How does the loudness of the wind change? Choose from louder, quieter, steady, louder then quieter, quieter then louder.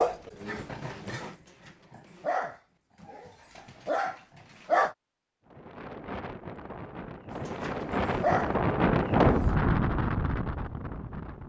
louder then quieter.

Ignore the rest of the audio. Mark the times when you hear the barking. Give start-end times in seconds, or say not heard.
0.0-5.0, 7.5-9.4.